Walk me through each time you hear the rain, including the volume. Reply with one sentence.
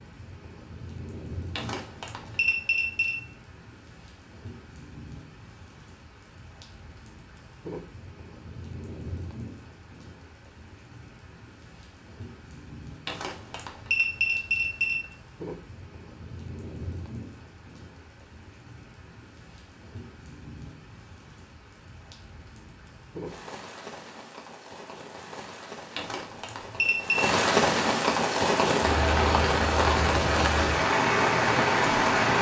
You can hear the rain from 0.0 to 32.3 s, getting louder.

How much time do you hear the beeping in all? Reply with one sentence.
You can hear the beeping for 5 seconds altogether.